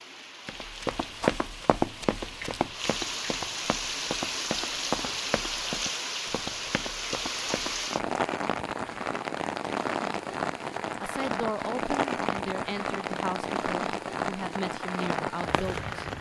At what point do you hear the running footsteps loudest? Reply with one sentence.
The volume of the running footsteps peaks at 1 second.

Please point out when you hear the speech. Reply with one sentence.
The speech can be heard from 11.0 to 16.1 s.